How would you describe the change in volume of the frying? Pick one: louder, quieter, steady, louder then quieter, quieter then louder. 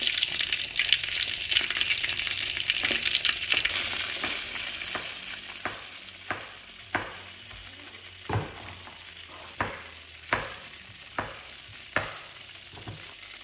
quieter.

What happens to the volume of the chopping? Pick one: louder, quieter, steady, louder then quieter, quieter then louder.
louder.